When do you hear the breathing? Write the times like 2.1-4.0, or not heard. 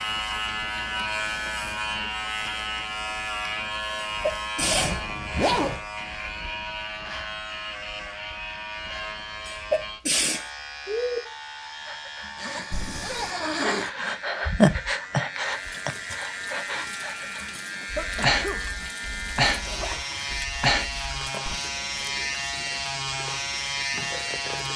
11.8-21.6.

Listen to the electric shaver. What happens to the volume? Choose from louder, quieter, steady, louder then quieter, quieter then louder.
quieter then louder.